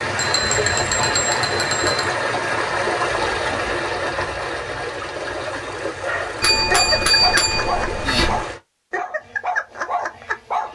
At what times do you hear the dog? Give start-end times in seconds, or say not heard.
5.8-10.6.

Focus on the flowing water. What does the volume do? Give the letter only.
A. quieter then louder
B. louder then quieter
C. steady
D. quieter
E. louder
D.